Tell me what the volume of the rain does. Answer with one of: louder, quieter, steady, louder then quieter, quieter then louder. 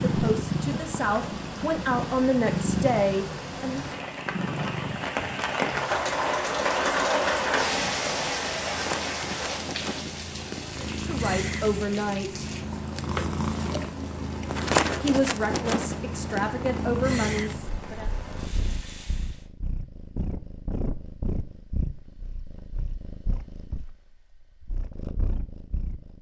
louder then quieter.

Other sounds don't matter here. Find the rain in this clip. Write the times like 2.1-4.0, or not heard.
0.0-19.4.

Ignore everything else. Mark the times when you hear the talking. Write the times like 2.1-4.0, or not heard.
0.0-3.8, 11.0-12.5, 15.0-18.1.